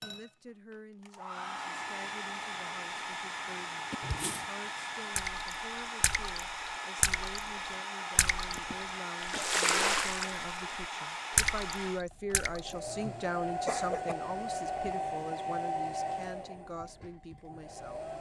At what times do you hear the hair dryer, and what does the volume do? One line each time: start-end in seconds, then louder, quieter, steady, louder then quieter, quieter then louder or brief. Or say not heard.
0.0-18.1 steady.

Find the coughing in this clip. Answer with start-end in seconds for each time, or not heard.
3.9-4.5, 8.5-10.1, 12.7-14.2.